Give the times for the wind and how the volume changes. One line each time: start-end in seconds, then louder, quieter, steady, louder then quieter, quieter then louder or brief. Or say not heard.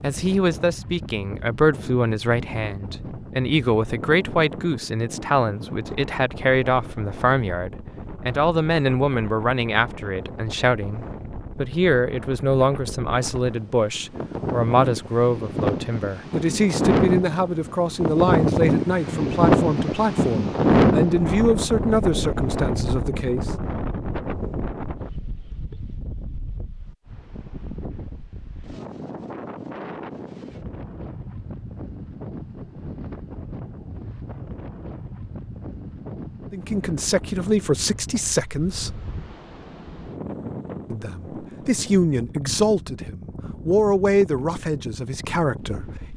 0.0-46.1 louder then quieter.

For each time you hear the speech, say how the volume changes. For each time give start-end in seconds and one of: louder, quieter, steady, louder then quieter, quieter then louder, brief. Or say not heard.
0.0-23.5 steady
36.5-39.0 brief
40.9-46.1 quieter.